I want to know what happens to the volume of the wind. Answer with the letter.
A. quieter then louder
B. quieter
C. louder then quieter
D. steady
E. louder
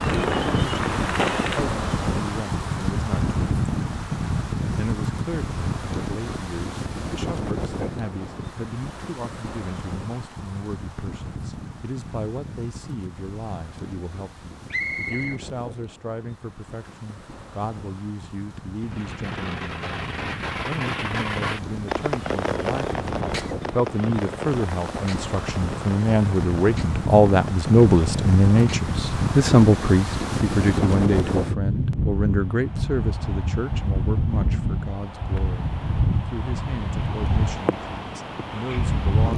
A.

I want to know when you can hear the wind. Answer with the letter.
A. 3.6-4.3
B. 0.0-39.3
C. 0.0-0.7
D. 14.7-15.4
B.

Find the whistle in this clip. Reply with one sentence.
You can hear the whistle from 14.7 to 15.4 s.